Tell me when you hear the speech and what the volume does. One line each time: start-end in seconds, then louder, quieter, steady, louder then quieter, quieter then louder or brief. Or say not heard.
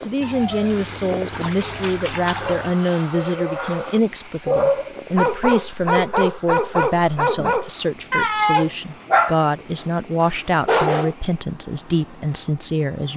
0.1-13.1 steady.